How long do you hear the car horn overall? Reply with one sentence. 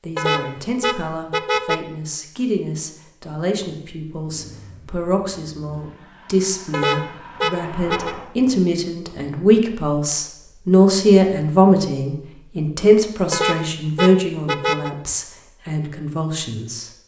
The car horn can be heard for 5 seconds in total.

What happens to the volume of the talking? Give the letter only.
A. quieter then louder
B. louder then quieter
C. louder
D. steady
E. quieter
B.